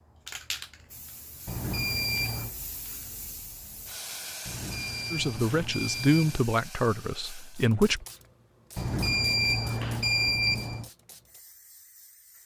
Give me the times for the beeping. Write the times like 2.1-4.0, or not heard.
1.4-2.5, 4.5-6.5, 8.8-10.9.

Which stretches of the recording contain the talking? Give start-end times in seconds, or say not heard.
5.1-8.1.